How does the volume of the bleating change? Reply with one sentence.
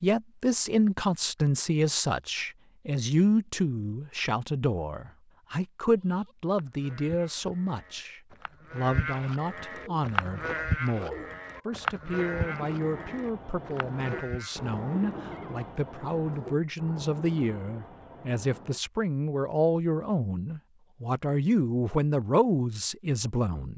The volume of the bleating goes up, then down.